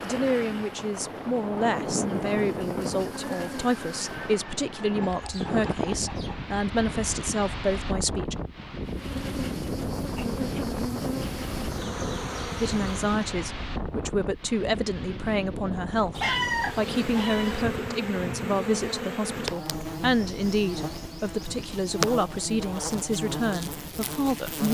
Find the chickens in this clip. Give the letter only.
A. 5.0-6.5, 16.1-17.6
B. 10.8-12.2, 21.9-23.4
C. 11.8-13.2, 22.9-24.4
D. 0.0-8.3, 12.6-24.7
A.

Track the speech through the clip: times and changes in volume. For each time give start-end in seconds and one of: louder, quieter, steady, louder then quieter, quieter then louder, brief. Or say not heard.
0.0-8.3 steady
12.6-24.7 steady.